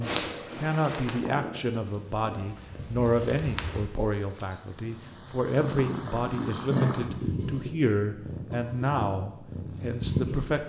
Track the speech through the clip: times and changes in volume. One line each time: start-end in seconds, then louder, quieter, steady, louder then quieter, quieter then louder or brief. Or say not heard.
0.0-10.6 steady.